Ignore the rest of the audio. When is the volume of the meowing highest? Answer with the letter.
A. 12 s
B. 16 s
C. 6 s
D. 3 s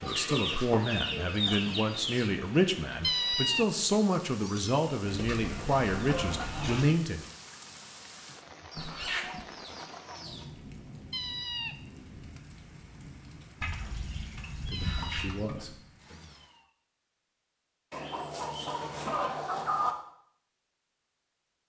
D.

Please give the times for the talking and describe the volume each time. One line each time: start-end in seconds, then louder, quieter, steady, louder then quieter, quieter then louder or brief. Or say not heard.
0.0-7.2 steady
14.6-16.4 brief.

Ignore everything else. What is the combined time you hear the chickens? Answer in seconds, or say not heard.
10 s.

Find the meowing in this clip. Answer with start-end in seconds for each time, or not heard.
3.0-4.8, 11.1-11.8, 14.7-16.6.